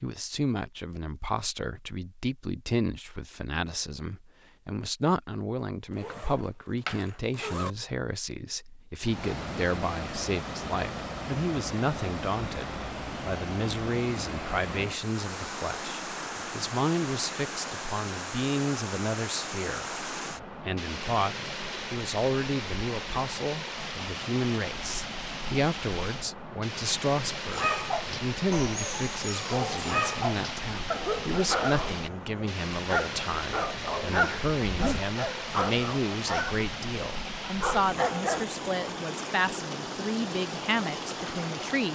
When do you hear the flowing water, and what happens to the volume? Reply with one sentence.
The flowing water can be heard from 9.0 to 41.9 s, at a steady volume.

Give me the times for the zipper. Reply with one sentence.
You can hear the zipper from 6.0 to 7.7 s and from 34.6 to 35.1 s.